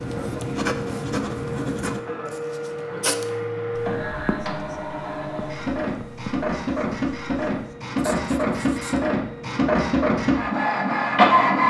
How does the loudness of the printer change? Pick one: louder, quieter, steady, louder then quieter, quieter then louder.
louder.